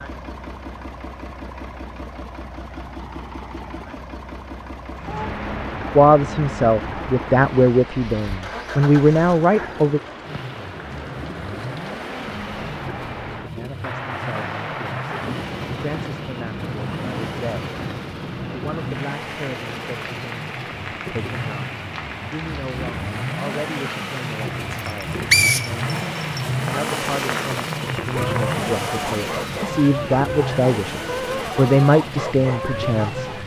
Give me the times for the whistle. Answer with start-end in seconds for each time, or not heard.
24.8-26.4.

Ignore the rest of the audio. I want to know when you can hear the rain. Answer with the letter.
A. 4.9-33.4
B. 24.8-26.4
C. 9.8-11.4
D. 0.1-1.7
A.